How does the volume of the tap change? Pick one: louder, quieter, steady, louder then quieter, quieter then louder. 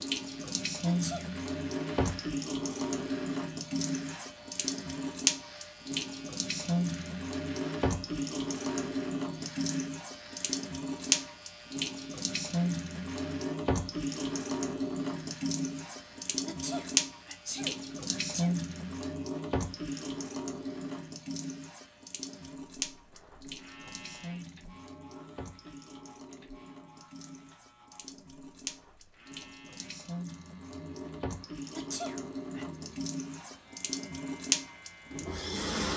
quieter then louder.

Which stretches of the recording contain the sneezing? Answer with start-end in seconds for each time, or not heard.
0.8-1.2, 16.4-18.5, 31.8-32.6.